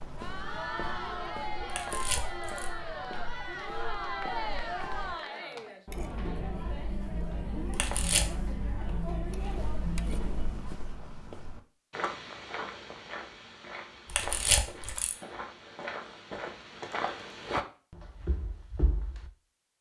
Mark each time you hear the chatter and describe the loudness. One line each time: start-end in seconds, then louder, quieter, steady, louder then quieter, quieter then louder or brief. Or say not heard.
0.0-10.8 steady.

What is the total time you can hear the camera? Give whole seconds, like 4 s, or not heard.
3 s.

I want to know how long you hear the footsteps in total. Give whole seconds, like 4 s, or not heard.
15 s.